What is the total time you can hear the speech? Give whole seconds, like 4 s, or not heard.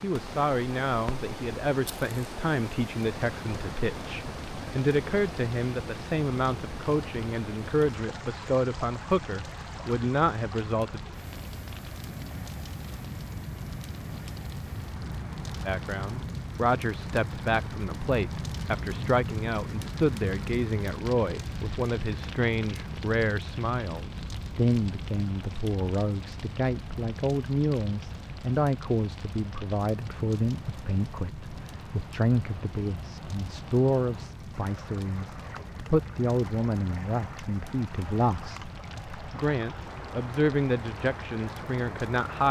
38 s.